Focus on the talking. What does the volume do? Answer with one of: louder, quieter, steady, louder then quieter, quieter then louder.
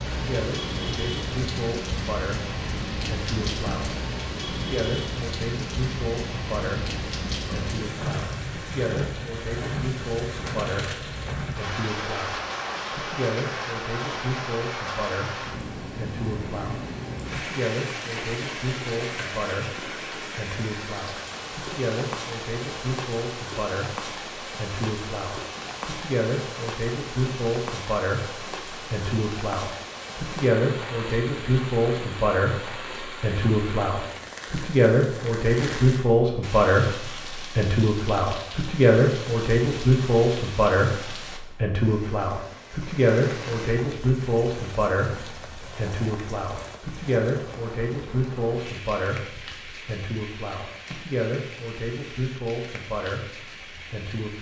louder then quieter.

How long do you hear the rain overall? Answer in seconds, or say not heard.
54 s.